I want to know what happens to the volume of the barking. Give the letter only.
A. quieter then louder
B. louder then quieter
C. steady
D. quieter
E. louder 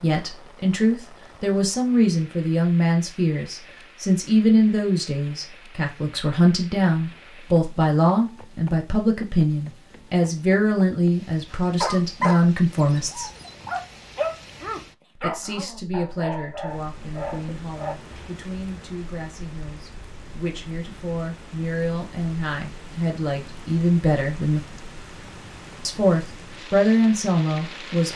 D.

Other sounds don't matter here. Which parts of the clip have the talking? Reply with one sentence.
You can hear the talking from 0.0 to 13.3 s, from 15.2 to 24.6 s and from 25.9 to 28.1 s.